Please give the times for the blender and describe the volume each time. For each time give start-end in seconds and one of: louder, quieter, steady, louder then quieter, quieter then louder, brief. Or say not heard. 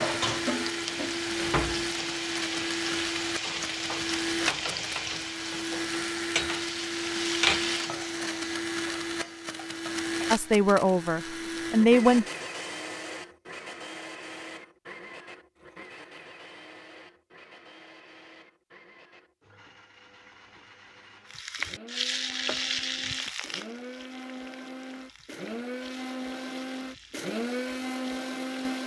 0.0-28.8 quieter then louder.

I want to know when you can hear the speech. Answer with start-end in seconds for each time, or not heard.
10.3-12.2.